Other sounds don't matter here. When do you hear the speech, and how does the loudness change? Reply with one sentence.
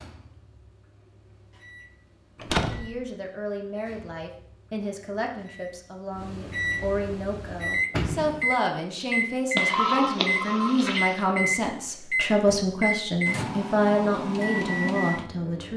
You can hear the speech from 2.6 to 15.7 s, getting louder.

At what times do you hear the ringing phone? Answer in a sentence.
The ringing phone can be heard from 9.6 to 11.2 s.